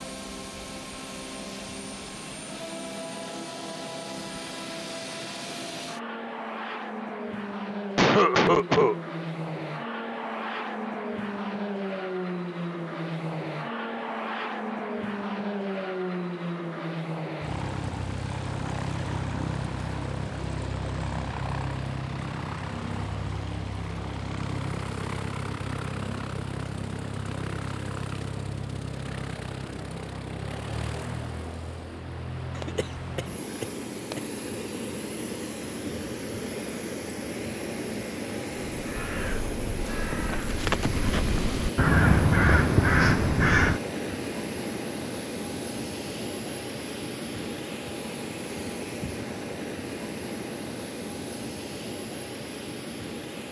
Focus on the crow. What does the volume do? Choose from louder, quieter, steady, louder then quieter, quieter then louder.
louder.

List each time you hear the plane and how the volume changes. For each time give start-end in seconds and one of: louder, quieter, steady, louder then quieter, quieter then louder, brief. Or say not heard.
0.0-53.4 steady.